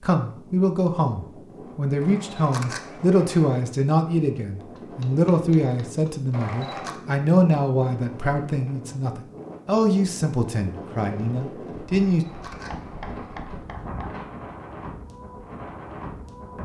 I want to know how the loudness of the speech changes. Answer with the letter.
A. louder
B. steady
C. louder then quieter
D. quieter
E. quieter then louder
B.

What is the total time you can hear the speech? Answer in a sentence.
The speech can be heard for 12 seconds in total.